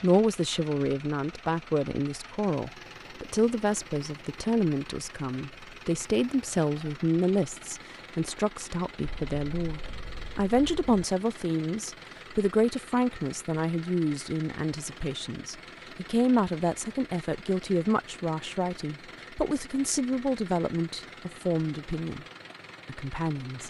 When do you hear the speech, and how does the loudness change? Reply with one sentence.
The speech can be heard from 0.0 to 22.2 s, at a steady volume; and briefly from 22.9 to 23.6 s.